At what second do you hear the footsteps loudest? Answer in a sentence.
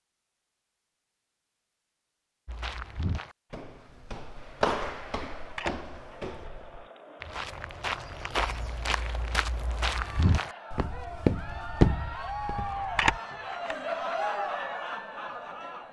The loudest moment of the footsteps is at 12 seconds.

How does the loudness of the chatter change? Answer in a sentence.
The volume of the chatter goes up.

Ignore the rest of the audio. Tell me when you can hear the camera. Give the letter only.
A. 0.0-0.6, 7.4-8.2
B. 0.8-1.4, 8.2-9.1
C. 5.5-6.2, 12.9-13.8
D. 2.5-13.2
C.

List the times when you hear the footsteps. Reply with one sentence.
The footsteps can be heard from 2.5 to 13.2 s.